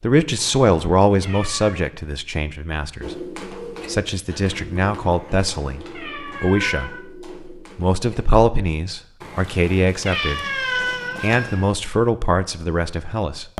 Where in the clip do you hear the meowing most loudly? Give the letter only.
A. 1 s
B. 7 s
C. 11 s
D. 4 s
C.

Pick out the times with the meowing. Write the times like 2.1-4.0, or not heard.
0.3-1.8, 5.0-7.0, 9.2-11.7.